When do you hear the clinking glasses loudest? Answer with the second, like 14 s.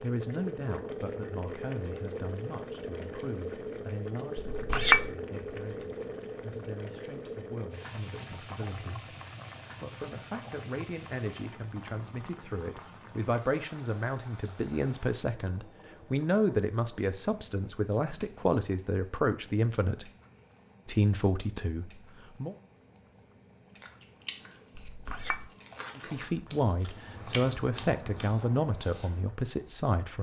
5 s.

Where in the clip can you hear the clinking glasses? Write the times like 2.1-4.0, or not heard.
4.5-5.1, 24.8-25.4.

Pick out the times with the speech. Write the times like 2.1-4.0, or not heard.
0.0-9.1, 9.8-20.1, 20.9-22.6, 25.9-30.1.